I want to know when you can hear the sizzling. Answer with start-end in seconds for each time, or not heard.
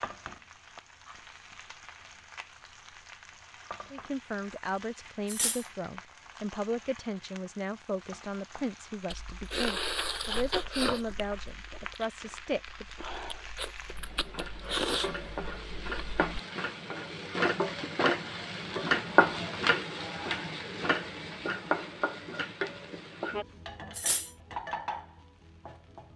0.0-26.1.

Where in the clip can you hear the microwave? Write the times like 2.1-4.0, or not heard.
not heard.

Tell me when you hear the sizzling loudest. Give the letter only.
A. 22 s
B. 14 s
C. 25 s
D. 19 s
D.